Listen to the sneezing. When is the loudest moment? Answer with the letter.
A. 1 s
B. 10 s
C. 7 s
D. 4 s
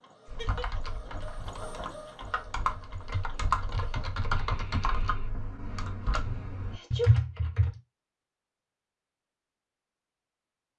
C.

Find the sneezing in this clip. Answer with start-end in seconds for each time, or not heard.
0.2-0.8, 6.7-7.2.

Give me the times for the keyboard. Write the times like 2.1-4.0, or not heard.
0.2-7.8.